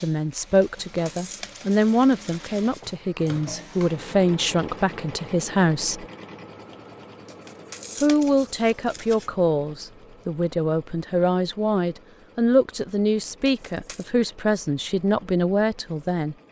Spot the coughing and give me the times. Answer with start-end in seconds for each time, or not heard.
not heard.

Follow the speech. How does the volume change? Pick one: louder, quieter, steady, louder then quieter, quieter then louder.
steady.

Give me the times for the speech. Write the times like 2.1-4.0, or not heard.
0.0-6.0, 8.0-16.4.